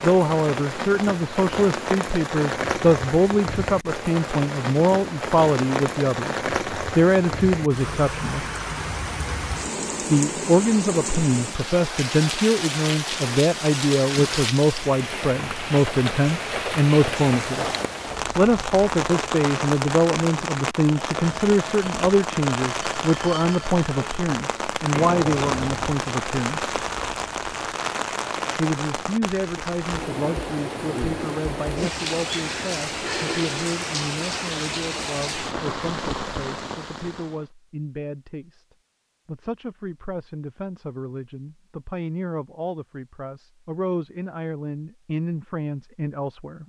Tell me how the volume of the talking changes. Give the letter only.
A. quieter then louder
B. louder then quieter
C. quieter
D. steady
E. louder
C.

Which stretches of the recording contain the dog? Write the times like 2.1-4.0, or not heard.
not heard.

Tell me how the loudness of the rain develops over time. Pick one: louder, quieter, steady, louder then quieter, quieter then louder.
steady.